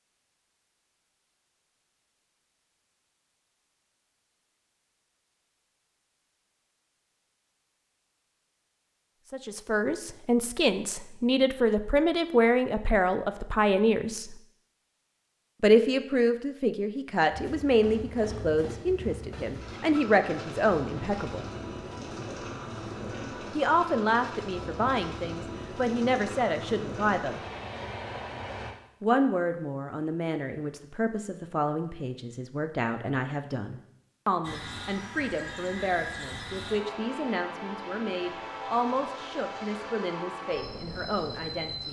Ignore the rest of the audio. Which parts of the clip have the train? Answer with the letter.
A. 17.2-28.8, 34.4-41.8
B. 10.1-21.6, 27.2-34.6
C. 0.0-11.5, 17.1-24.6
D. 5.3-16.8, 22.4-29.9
A.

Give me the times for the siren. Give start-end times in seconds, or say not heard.
not heard.